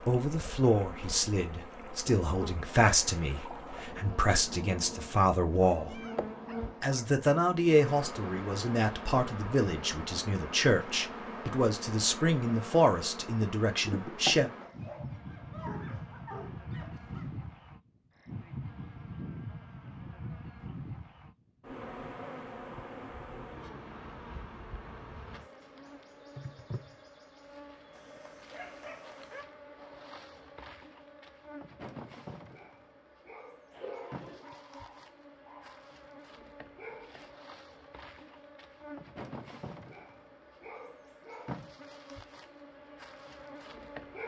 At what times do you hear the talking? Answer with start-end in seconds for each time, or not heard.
0.1-6.0, 6.8-14.5.